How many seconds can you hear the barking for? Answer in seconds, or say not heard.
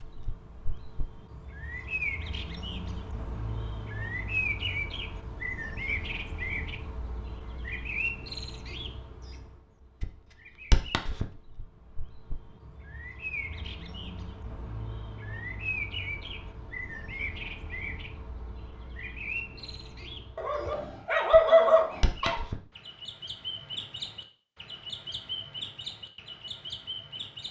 2 s.